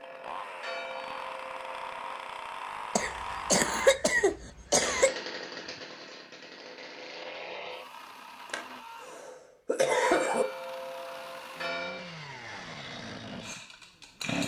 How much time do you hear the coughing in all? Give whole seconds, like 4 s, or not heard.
4 s.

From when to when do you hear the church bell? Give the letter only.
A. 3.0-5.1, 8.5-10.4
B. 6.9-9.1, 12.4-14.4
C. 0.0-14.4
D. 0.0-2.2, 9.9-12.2
D.